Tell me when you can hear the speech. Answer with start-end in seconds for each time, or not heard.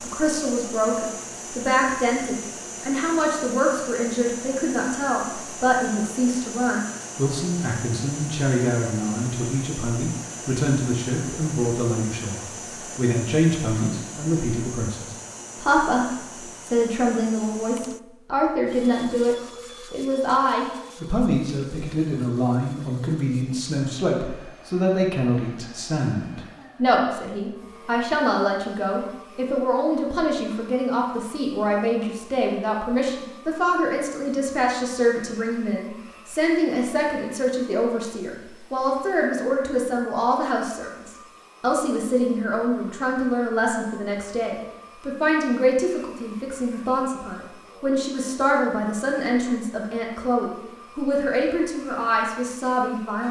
0.0-53.2.